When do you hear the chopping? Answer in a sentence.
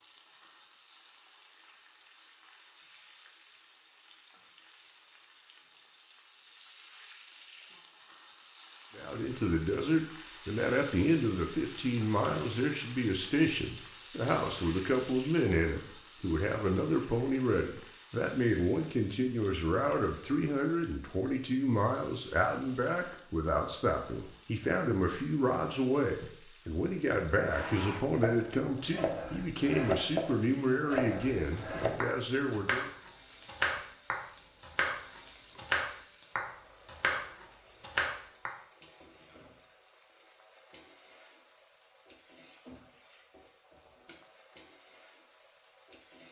The chopping can be heard from 27.4 to 38.5 s.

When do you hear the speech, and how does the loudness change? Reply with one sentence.
You can hear the speech from 8.9 to 32.9 s, at a steady volume.